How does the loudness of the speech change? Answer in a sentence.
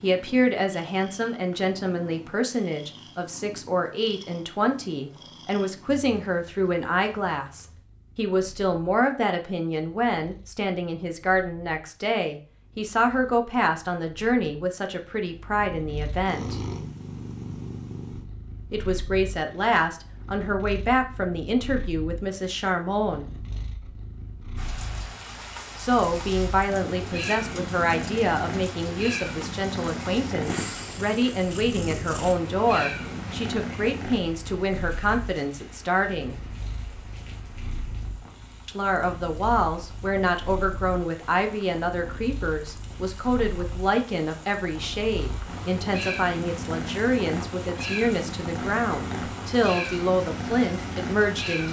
The loudness of the speech stays about the same.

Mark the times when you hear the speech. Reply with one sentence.
You can hear the speech from 0.0 to 16.6 s, from 18.7 to 23.3 s, from 25.8 to 36.4 s and from 38.6 to 51.6 s.